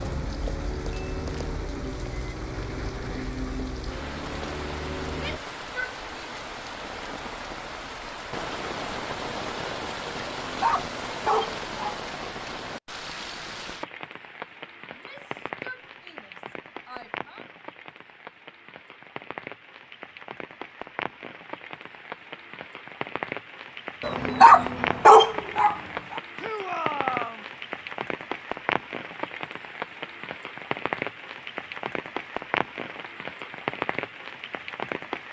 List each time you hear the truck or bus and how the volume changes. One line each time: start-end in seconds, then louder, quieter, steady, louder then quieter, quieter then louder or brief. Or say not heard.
0.0-5.4 steady.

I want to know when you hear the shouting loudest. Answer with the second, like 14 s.
27 s.